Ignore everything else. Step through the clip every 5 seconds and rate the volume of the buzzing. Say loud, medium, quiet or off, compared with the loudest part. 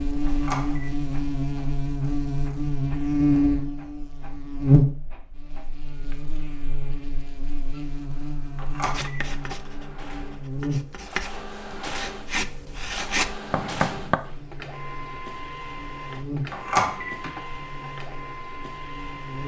loud, quiet, medium, quiet.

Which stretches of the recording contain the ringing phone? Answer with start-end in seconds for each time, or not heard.
0.2-0.8, 8.6-9.2, 16.5-17.1.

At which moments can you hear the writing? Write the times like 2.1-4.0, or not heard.
8.8-14.2.